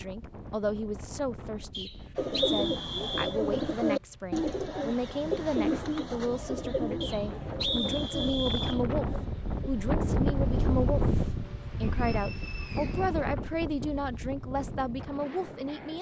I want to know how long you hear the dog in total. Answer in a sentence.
You can't hear the dog here.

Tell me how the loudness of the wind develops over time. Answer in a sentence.
The loudness of the wind goes up, then down.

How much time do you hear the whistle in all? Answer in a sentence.
You can hear the whistle for 5 seconds altogether.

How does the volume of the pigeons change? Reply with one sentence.
The volume of the pigeons goes down.